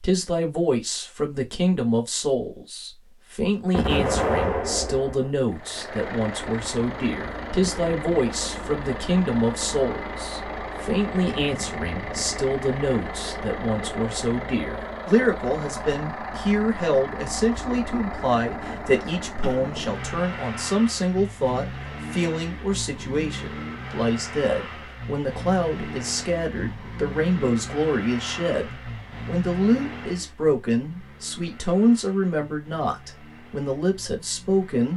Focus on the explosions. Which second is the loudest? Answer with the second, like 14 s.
4 s.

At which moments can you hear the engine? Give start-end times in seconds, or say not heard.
5.5-34.9.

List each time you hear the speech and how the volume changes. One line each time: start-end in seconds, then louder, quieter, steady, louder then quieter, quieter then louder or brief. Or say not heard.
0.0-34.9 steady.